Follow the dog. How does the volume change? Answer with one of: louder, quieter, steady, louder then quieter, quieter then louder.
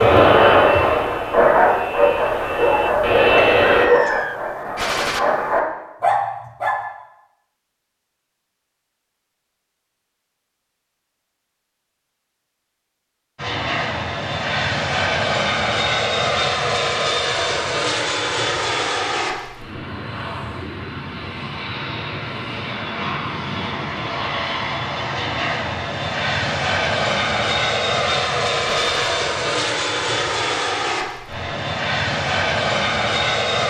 quieter then louder.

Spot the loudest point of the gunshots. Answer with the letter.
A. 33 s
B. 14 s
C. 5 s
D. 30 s
C.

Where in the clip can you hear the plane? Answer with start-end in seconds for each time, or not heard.
0.0-3.9, 13.3-33.6.